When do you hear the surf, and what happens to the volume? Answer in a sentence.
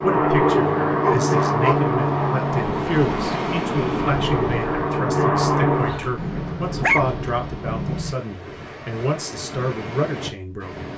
You can hear the surf from 0.0 to 10.9 s, getting louder then quieter.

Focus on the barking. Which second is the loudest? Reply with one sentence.
The volume of the barking peaks at 7 seconds.